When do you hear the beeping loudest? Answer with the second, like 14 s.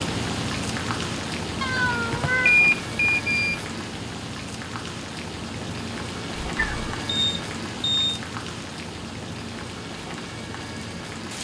3 s.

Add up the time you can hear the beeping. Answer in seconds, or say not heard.
2 s.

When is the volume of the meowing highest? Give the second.
2 s.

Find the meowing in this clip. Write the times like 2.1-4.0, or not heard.
1.6-2.6, 6.5-7.0.